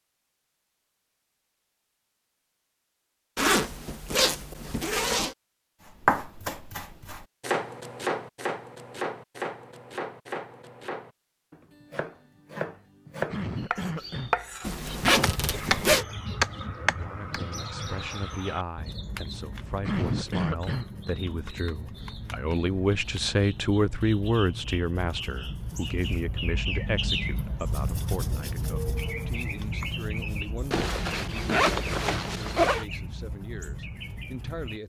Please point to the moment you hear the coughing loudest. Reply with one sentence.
The volume of the coughing peaks at 20 seconds.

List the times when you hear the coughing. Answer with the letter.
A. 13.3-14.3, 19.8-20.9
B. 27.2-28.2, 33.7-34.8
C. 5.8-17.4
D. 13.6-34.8
A.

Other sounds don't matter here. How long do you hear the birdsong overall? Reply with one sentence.
You can hear the birdsong for 21 seconds altogether.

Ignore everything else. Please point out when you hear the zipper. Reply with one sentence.
You can hear the zipper from 3.4 to 5.3 s, from 14.7 to 16.1 s and from 30.7 to 32.9 s.